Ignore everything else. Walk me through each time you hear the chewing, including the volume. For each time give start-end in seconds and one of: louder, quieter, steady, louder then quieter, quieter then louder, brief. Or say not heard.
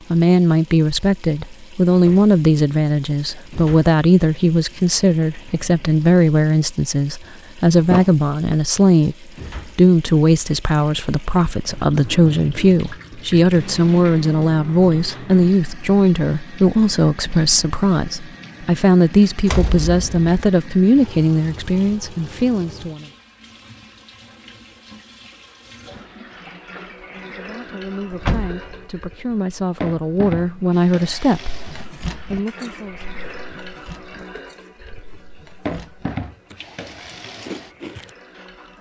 31.5-38.7 quieter then louder.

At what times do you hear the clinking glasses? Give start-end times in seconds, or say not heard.
not heard.